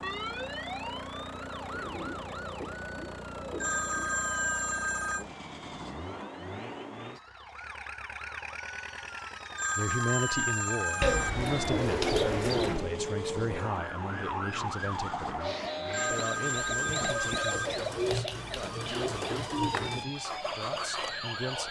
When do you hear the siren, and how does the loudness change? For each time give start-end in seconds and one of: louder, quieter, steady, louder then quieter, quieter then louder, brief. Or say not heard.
0.0-21.6 quieter then louder.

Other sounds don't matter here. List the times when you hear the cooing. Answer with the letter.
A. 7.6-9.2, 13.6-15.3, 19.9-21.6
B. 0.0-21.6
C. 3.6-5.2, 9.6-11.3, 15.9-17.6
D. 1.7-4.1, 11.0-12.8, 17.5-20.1
D.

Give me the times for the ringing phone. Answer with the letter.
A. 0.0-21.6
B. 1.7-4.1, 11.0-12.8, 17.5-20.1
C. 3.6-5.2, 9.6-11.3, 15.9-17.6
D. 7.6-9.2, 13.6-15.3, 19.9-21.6
C.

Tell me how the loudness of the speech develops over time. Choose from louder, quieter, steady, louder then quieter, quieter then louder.
quieter.